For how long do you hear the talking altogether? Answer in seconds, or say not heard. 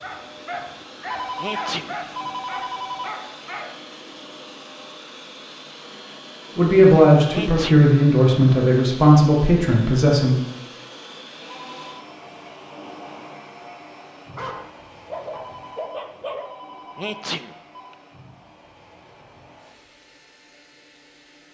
4 s.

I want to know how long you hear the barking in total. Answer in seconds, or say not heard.
6 s.